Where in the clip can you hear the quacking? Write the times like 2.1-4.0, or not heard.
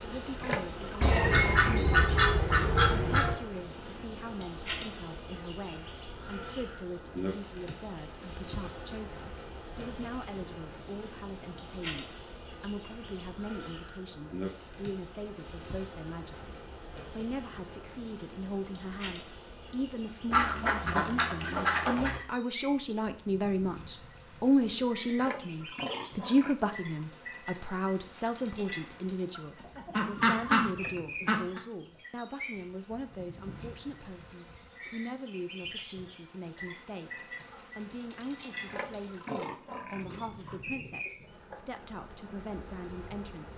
1.0-3.4, 20.3-22.2, 29.4-31.6.